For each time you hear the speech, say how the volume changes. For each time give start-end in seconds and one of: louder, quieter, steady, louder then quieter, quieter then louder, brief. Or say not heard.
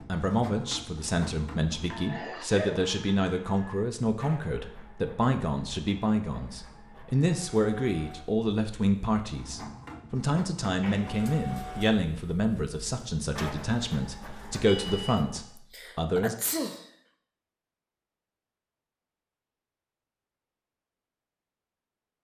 0.1-16.4 steady.